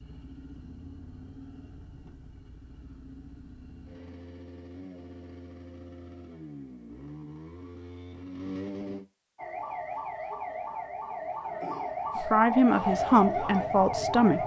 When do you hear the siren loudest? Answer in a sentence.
The volume of the siren peaks at 13 seconds.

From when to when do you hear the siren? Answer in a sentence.
You can hear the siren from 9.3 to 14.4 s.